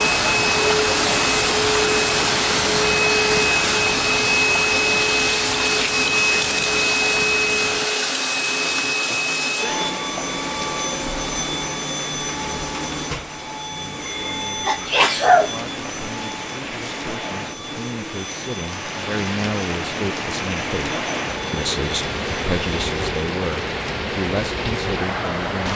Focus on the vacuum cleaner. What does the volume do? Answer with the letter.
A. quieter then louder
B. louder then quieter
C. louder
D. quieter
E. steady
D.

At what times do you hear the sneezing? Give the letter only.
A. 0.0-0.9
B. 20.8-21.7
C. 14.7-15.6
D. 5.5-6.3
C.